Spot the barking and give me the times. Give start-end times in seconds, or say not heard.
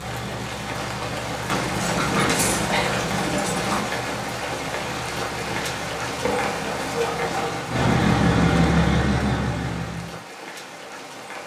1.4-3.9, 6.2-7.7.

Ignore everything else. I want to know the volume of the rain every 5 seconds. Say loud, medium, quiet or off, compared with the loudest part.
loud, loud, medium.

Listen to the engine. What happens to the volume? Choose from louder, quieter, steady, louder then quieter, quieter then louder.
louder.